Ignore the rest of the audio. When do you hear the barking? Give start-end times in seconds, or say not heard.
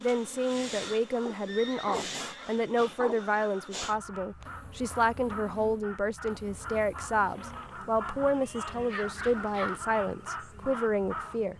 1.2-3.3, 8.9-9.8.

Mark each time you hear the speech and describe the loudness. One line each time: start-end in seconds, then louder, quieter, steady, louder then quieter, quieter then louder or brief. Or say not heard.
0.0-11.5 steady.